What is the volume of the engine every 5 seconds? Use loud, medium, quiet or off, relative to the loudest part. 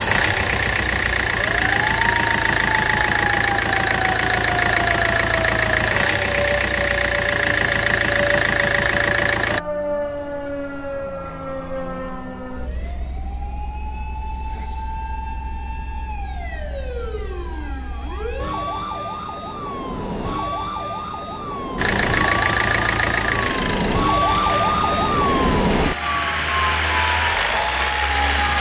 loud, loud, off, off, loud, loud.